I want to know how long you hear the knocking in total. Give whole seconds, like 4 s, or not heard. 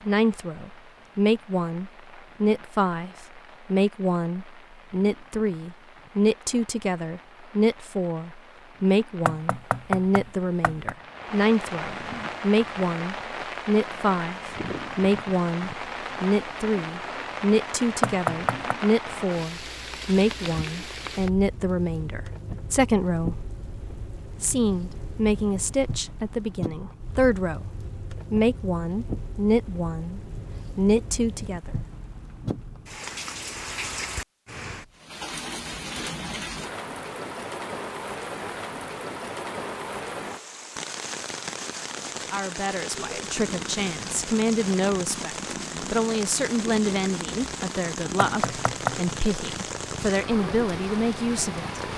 3 s.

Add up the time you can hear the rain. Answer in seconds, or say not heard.
52 s.